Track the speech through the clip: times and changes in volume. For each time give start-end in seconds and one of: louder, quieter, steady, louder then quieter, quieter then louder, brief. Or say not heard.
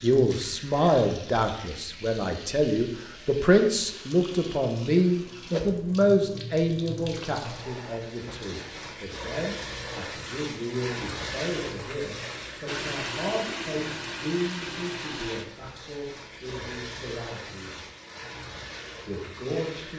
0.0-17.9 quieter
19.1-19.9 brief.